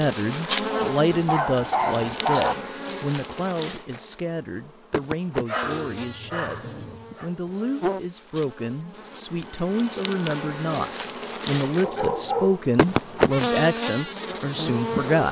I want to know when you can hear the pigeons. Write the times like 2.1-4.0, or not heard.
5.6-7.2.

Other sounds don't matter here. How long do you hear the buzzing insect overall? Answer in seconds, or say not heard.
15 s.